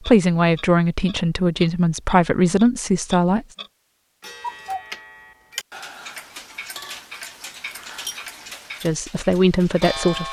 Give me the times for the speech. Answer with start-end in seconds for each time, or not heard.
0.0-3.5, 8.8-10.2.